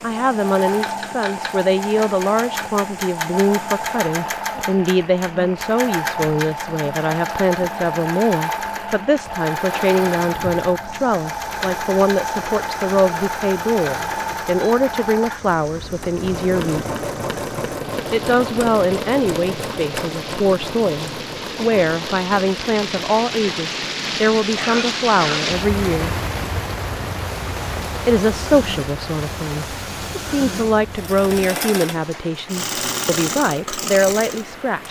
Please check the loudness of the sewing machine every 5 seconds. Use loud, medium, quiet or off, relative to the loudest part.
loud, loud, loud, loud, medium, medium, loud.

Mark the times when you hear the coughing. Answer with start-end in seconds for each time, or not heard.
24.6-25.4.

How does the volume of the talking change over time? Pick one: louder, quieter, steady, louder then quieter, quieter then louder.
steady.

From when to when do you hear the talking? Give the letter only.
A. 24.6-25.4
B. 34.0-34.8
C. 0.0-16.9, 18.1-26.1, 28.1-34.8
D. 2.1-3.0
C.